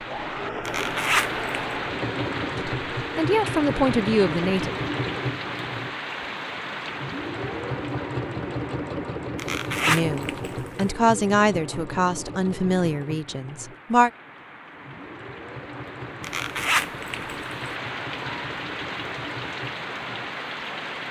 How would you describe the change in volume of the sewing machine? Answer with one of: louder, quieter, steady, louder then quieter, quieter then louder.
quieter.